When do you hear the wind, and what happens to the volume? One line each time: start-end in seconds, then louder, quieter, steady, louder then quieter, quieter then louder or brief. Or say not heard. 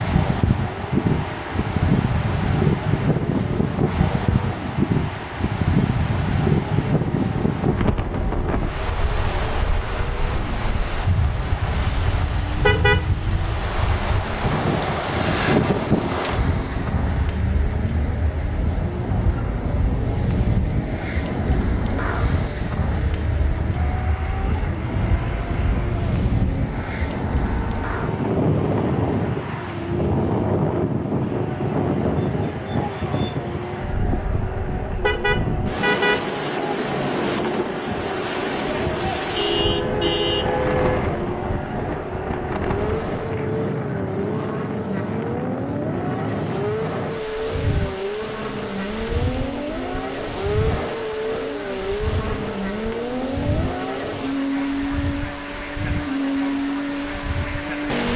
0.0-58.0 quieter.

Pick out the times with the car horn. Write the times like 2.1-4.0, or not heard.
12.6-13.0, 35.0-36.2, 39.4-41.1.